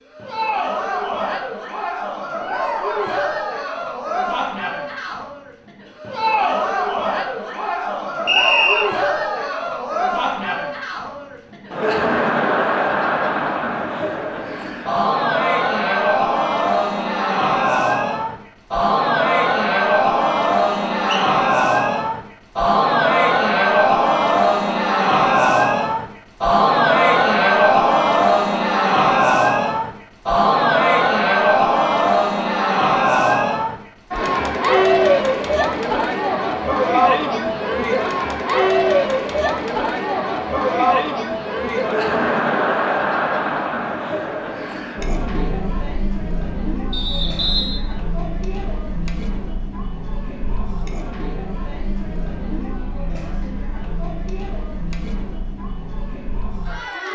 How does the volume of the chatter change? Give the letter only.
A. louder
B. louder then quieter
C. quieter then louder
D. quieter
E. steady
B.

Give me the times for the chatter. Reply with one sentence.
The chatter can be heard from 0.1 to 57.1 s.